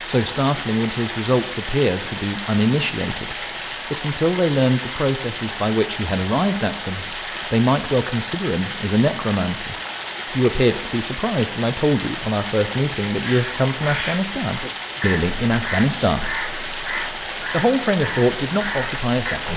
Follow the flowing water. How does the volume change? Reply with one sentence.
The loudness of the flowing water stays about the same.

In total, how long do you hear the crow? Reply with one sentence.
You can hear the crow for 6 seconds altogether.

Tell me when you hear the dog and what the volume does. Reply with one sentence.
You can't hear the dog here.